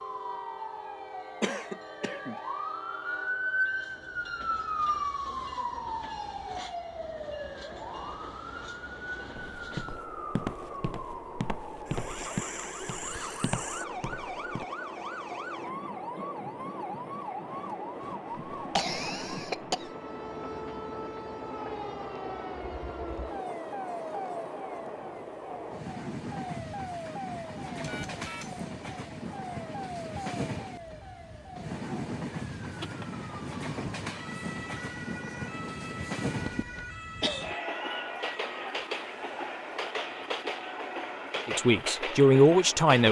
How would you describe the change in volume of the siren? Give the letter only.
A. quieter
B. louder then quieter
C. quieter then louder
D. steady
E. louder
A.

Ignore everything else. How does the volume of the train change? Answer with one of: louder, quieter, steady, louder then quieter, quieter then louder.
louder.